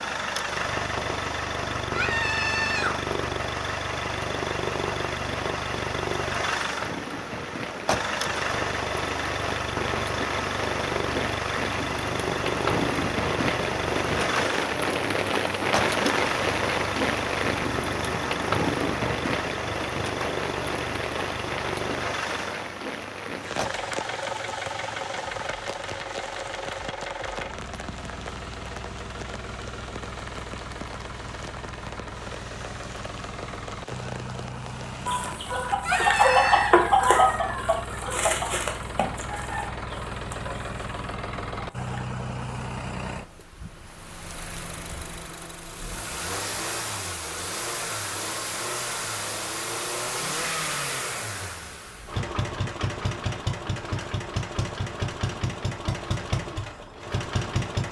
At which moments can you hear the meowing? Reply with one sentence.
You can hear the meowing from 1.9 to 3.0 s and from 35.9 to 36.8 s.